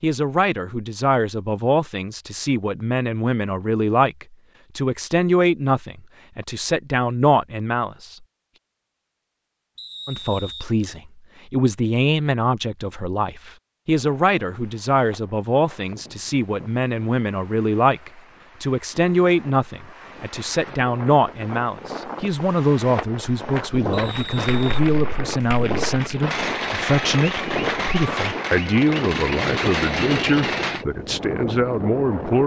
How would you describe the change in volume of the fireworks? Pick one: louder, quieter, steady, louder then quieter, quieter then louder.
louder.